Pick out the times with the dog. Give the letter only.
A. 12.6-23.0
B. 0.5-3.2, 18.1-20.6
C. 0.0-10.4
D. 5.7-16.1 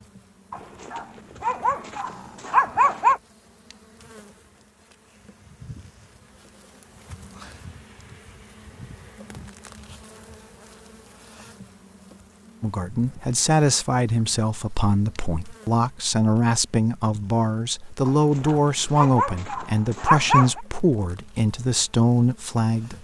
B.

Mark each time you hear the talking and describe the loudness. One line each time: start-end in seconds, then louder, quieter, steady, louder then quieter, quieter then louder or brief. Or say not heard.
12.6-23.0 steady.